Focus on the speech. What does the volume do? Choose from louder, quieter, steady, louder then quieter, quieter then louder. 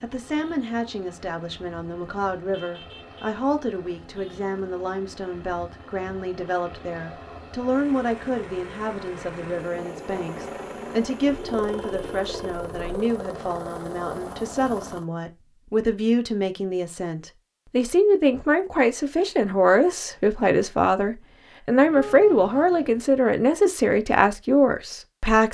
louder.